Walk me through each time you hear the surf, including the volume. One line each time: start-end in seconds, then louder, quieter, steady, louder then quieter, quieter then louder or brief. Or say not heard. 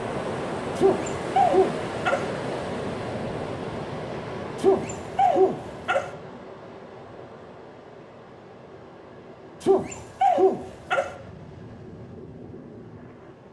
0.0-13.4 quieter.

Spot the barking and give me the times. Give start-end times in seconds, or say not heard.
0.8-2.2, 4.5-6.0, 9.6-11.1.